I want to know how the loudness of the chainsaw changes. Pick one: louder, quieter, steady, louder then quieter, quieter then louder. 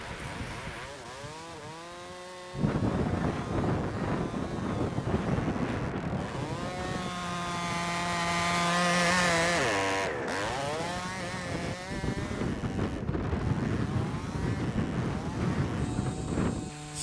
louder then quieter.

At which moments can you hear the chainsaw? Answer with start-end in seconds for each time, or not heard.
0.0-16.9.